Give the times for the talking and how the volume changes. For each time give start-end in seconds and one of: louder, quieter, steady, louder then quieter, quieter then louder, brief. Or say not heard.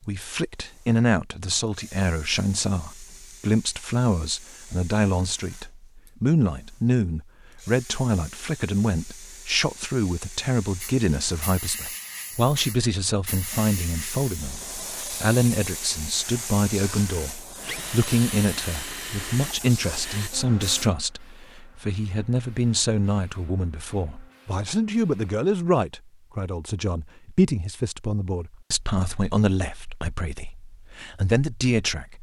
0.1-32.1 steady.